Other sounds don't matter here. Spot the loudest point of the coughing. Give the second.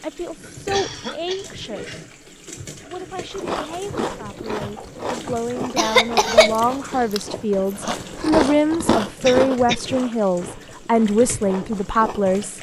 6 s.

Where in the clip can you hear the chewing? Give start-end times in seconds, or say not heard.
3.3-12.4.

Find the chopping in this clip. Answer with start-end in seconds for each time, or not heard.
not heard.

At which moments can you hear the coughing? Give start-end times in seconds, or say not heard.
0.4-2.1, 5.8-6.6, 9.2-9.9.